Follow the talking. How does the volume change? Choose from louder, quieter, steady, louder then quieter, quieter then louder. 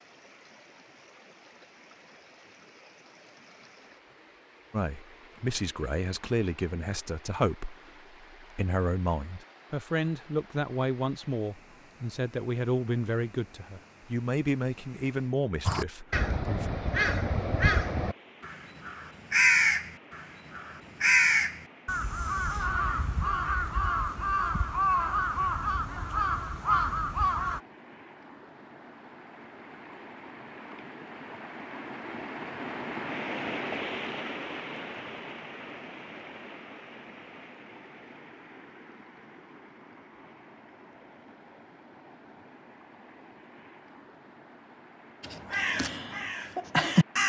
steady.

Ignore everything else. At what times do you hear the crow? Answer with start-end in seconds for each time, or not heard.
15.7-27.6, 45.2-47.2.